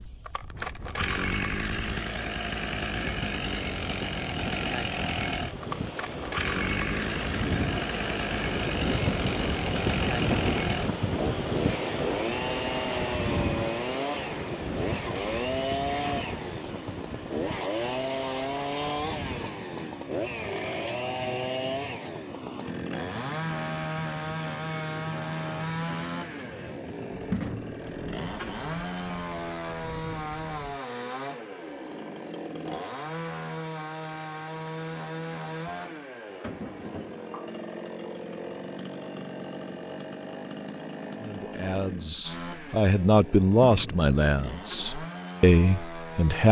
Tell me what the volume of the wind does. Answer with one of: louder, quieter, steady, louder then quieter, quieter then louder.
louder then quieter.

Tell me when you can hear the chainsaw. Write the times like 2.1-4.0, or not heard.
0.0-46.4.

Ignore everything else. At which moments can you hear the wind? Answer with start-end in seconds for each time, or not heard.
0.0-30.8.